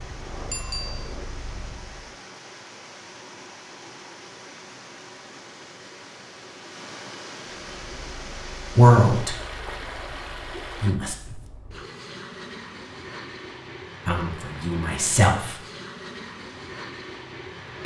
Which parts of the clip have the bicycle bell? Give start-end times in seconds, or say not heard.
0.5-1.1.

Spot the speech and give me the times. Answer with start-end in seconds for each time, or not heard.
8.8-9.3, 10.8-11.4, 14.1-15.6.